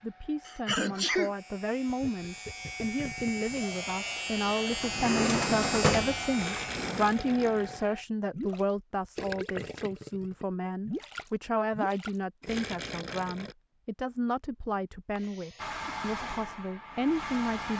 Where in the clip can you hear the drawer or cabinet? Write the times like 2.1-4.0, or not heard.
4.8-7.0.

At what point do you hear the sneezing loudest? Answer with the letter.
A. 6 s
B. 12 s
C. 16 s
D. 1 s
D.